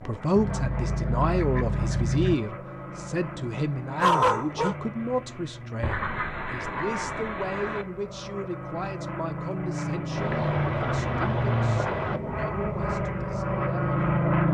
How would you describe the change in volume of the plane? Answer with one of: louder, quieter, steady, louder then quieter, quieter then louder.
louder.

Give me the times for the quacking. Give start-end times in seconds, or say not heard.
0.3-2.4, 5.8-7.8, 10.2-12.2.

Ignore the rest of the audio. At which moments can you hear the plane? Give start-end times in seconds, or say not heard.
0.0-14.4.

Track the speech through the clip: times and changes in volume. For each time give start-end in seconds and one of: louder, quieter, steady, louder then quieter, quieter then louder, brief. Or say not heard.
0.0-14.2 quieter.